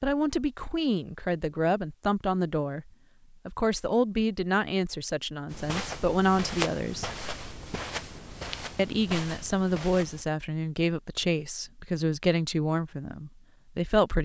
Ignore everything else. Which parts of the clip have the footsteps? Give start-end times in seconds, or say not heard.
5.5-10.2.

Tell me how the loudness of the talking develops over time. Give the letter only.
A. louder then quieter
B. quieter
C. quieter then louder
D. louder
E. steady
E.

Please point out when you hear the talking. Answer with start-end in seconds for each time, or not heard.
0.0-7.1, 8.8-14.2.